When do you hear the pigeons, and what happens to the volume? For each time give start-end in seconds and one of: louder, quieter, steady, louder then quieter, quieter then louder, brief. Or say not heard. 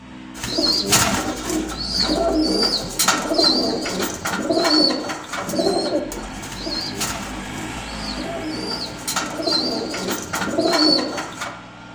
0.3-11.5 quieter then louder.